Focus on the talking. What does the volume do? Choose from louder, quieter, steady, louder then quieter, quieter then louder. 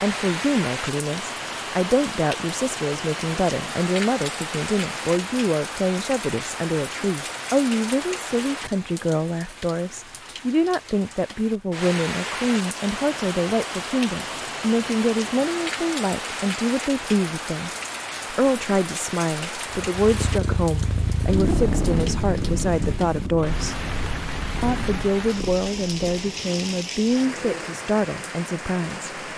steady.